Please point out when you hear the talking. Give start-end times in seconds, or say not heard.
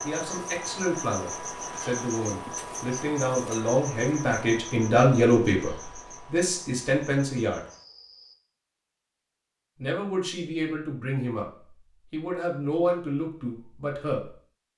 0.0-7.6, 9.8-11.4, 12.1-14.3.